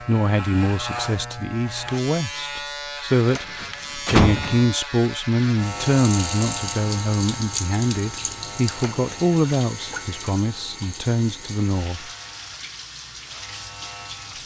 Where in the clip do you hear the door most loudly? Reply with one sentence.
The volume of the door peaks at 4 seconds.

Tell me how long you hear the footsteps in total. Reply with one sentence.
The footsteps can't be heard in this clip.